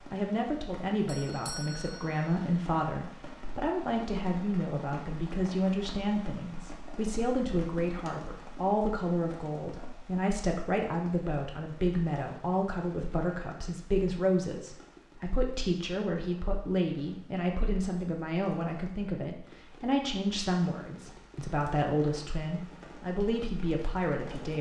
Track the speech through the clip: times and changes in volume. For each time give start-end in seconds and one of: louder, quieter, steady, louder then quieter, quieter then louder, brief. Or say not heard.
0.1-24.5 steady.